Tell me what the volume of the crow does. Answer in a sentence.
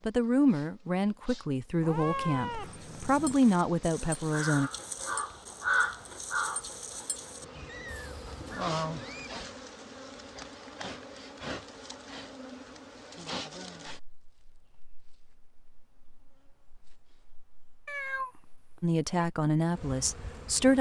The loudness of the crow goes up, then down.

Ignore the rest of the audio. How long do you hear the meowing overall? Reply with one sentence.
The meowing can be heard for 5 seconds in total.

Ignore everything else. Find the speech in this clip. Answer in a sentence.
You can hear the speech from 0.1 to 4.7 s and from 18.8 to 20.7 s.